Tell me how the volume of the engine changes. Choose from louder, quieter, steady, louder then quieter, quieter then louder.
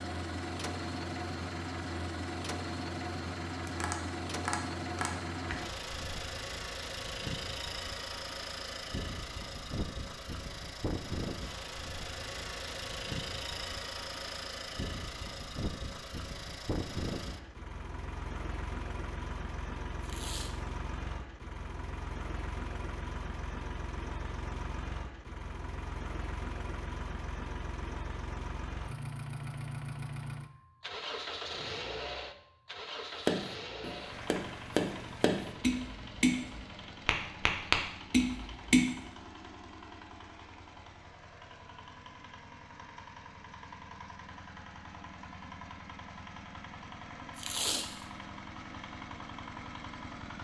quieter.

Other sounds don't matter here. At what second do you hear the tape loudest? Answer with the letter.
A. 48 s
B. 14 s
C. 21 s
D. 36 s
A.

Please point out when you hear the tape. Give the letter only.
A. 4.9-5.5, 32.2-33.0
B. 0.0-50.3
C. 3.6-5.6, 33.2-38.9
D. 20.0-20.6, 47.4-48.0
D.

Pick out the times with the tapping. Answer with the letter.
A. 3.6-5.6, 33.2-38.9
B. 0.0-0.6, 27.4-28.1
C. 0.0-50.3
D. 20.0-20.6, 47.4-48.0
A.